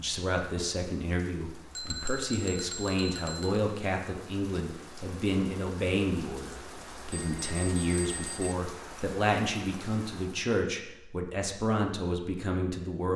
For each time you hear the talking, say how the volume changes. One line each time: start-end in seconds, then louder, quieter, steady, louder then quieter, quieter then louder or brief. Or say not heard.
0.0-13.1 steady.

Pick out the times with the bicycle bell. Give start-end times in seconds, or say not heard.
1.8-3.6, 7.1-8.6.